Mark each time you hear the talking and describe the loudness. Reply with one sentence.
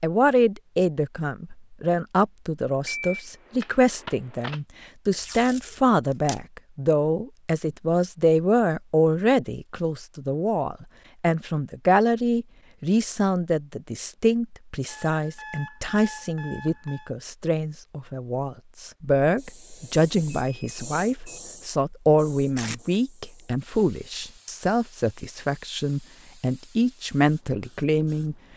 You can hear the talking from 0.0 to 28.4 s, at a steady volume.